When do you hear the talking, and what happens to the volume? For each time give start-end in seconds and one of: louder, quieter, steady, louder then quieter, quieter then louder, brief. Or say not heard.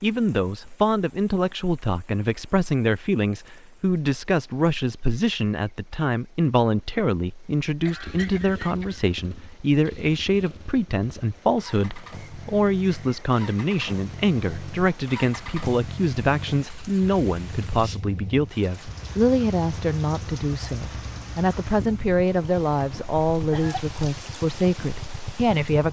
0.0-25.8 steady.